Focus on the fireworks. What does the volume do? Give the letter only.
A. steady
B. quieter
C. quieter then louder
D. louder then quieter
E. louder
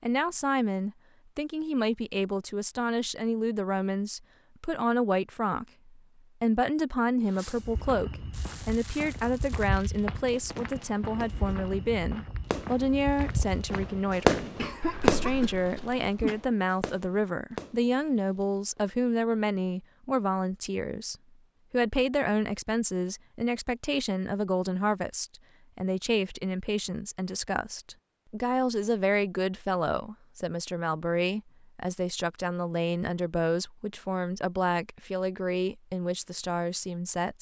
D.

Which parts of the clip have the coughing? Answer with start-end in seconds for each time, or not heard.
14.6-16.4.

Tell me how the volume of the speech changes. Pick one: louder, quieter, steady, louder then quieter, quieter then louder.
steady.